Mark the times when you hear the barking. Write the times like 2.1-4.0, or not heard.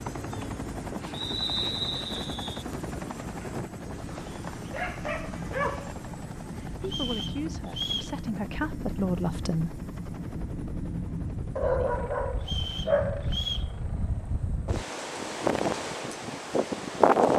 4.2-6.0, 11.6-13.3.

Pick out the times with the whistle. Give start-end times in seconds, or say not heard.
1.1-2.6, 6.8-8.2, 12.4-13.7.